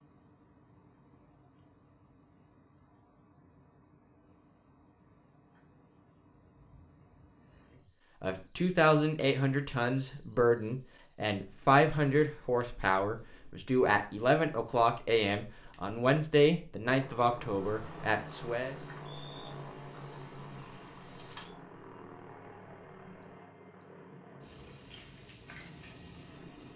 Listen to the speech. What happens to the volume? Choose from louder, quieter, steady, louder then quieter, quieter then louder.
steady.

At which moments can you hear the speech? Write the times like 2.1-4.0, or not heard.
8.2-18.8.